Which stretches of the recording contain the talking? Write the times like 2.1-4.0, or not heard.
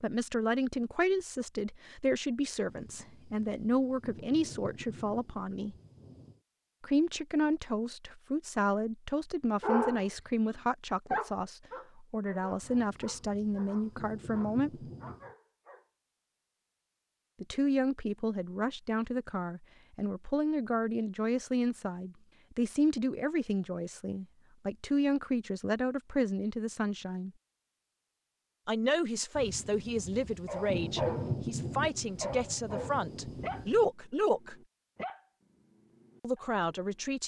0.0-5.8, 6.8-14.8, 17.4-27.3, 28.6-34.5, 36.2-37.2.